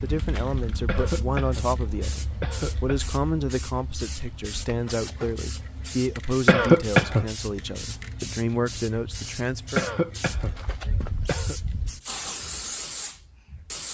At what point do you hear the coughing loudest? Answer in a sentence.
The loudest moment of the coughing is at 7 seconds.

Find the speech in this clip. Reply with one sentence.
The speech can be heard from 0.0 to 9.9 s.